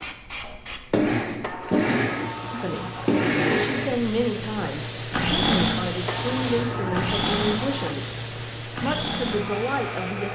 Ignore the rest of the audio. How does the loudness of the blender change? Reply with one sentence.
The volume of the blender goes down.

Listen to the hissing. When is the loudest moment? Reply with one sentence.
The loudest moment of the hissing is at 6 seconds.